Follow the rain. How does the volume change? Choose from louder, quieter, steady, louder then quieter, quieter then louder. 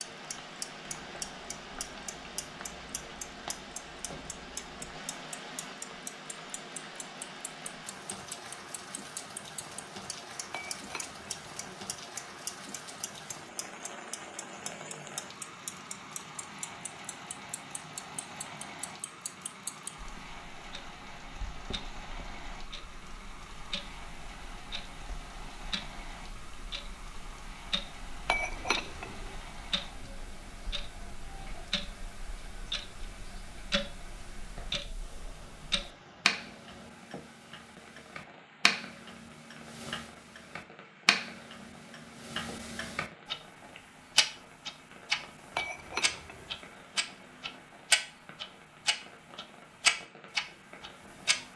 quieter.